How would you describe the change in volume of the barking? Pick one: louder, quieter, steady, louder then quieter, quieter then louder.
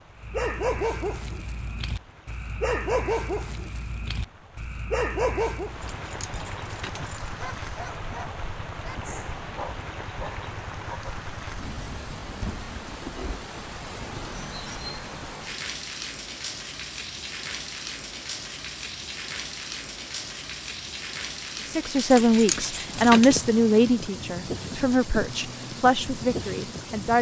quieter.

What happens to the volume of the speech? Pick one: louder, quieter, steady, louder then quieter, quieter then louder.
quieter then louder.